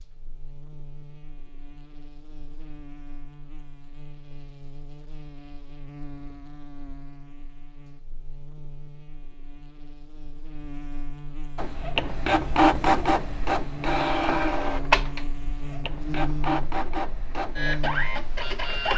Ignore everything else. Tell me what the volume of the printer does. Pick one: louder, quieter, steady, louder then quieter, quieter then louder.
quieter.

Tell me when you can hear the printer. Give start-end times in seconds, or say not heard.
11.6-18.9.